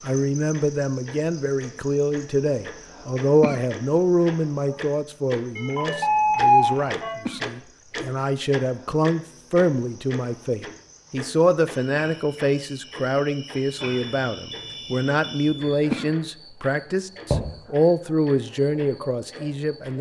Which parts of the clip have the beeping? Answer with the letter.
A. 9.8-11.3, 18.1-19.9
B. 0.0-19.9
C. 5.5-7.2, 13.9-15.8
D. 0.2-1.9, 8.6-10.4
C.